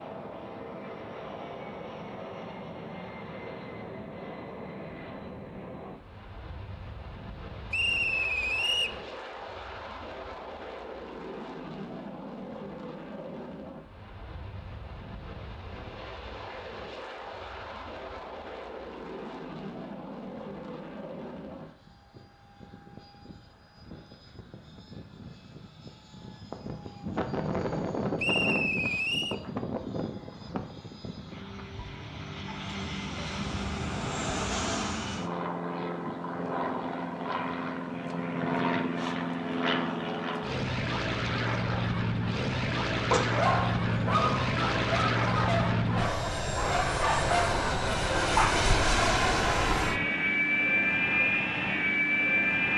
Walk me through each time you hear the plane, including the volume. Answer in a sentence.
The plane can be heard from 0.0 to 52.7 s, getting louder.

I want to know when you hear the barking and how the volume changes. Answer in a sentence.
You can hear the barking from 43.1 to 48.7 s, at a steady volume.